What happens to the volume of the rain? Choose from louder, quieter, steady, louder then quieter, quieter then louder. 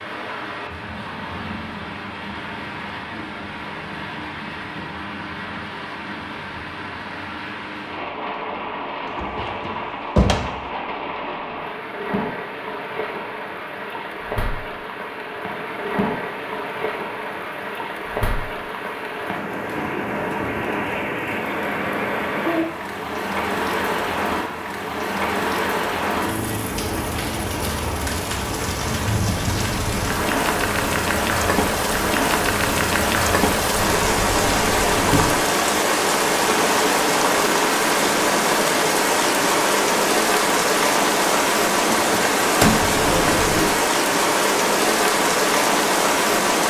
louder.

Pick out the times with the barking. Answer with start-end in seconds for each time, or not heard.
not heard.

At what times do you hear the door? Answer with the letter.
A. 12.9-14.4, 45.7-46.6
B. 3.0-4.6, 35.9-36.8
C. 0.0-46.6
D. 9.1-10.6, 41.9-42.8
D.